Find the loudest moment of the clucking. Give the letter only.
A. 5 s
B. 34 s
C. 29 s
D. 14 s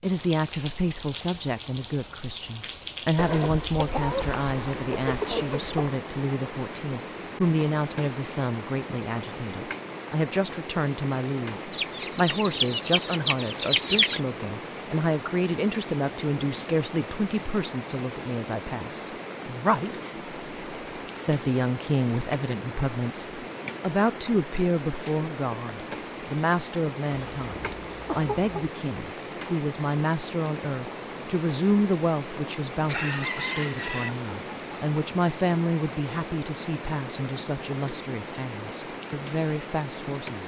D.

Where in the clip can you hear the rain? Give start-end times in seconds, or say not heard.
0.0-40.4.